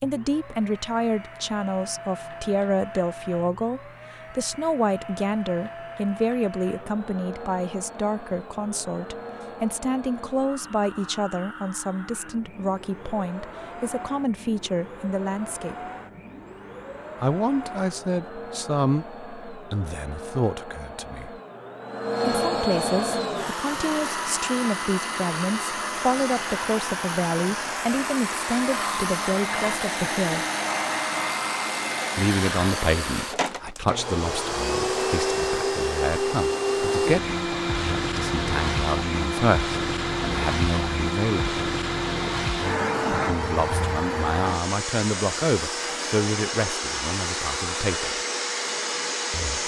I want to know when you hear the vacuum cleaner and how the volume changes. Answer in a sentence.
You can hear the vacuum cleaner from 0.0 to 49.6 s, getting louder.